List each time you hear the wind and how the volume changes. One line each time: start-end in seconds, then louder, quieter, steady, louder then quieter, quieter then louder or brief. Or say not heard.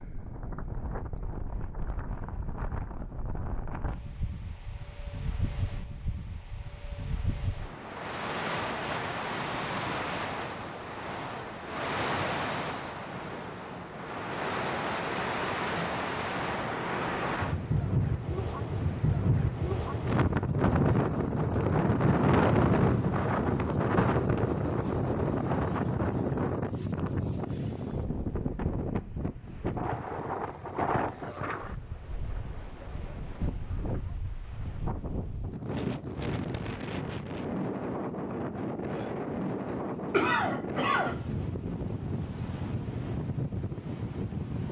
0.0-44.6 louder then quieter.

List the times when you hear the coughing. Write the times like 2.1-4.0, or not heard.
39.6-41.1.